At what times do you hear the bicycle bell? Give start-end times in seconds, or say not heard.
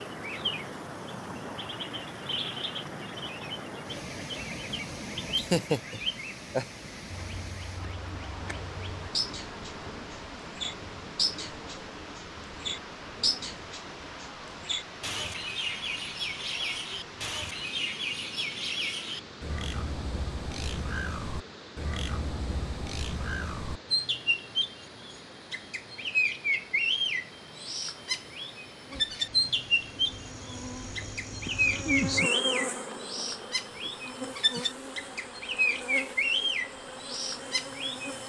not heard.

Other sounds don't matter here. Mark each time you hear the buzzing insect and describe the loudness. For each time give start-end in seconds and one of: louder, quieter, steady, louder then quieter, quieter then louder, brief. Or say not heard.
28.8-38.2 louder then quieter.